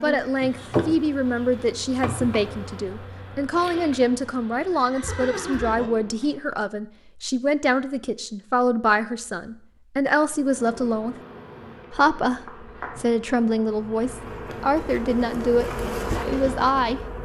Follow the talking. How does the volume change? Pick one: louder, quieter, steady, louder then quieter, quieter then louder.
steady.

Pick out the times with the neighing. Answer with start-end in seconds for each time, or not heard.
4.7-5.9.